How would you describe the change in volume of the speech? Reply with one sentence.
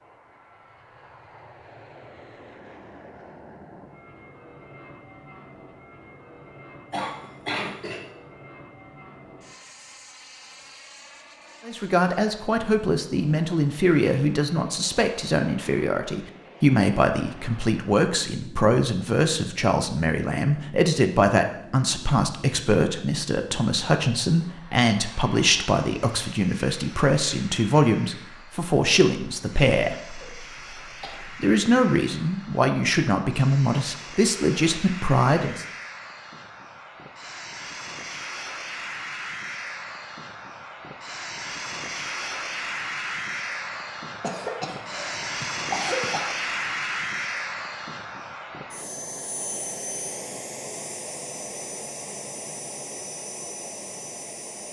The loudness of the speech stays about the same.